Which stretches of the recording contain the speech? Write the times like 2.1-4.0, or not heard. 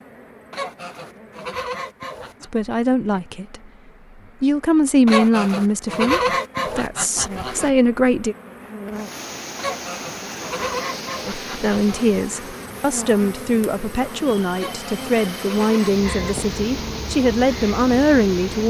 2.4-3.7, 4.4-8.3, 11.2-18.6.